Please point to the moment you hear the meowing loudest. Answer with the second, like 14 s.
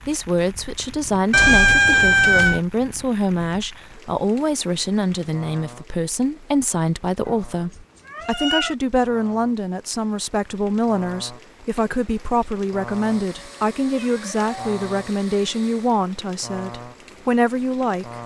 2 s.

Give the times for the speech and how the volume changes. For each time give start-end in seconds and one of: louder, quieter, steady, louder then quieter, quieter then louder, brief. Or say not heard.
0.1-18.2 steady.